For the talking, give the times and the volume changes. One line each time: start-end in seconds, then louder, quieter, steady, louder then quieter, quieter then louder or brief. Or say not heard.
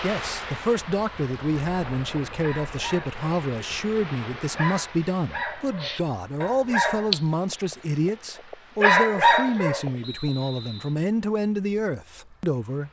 0.0-12.8 steady.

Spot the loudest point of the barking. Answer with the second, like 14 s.
9 s.